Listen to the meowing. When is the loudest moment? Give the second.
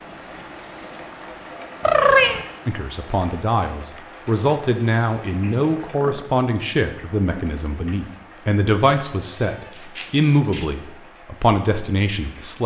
2 s.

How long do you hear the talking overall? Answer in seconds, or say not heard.
10 s.